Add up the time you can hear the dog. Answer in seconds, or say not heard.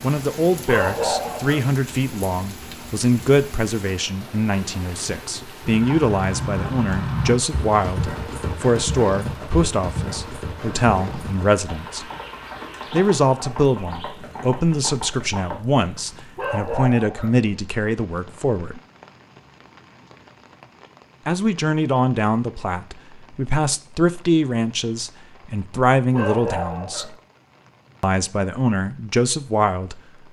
3 s.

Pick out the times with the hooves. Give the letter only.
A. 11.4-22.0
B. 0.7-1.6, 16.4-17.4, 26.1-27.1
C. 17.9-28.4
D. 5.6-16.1
D.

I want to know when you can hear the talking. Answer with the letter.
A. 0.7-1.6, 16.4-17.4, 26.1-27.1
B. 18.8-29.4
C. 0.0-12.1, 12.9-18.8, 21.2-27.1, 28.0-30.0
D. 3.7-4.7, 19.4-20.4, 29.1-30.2
C.